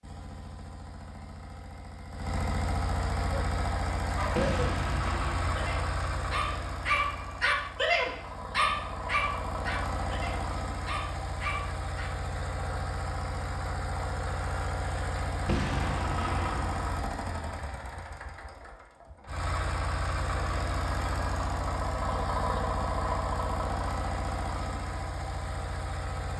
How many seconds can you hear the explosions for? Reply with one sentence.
The explosions can be heard for 3 seconds in total.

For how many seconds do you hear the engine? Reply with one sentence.
The engine can be heard for 26 seconds in total.